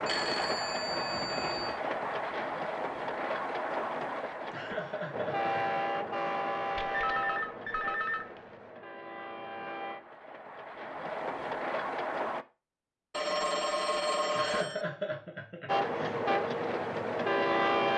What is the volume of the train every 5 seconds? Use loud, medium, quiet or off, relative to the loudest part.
medium, medium, medium, loud.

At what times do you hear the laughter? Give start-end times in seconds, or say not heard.
4.5-5.6, 14.3-16.2.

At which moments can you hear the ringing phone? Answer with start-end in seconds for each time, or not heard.
0.1-1.8, 6.8-8.4, 13.1-14.8.